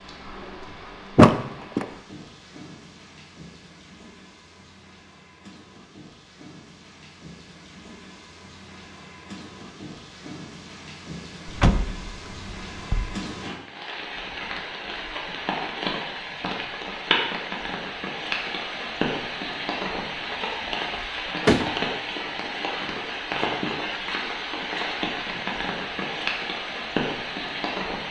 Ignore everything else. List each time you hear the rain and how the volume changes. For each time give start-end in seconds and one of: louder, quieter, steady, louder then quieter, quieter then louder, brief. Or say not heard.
0.0-28.0 louder.